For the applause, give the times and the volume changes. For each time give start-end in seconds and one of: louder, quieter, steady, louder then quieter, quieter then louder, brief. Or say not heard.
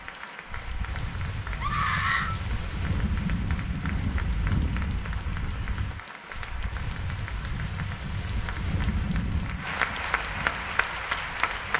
0.0-11.7 louder.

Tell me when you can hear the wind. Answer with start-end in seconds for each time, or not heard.
0.0-11.7.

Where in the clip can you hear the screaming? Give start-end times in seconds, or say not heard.
1.6-2.4.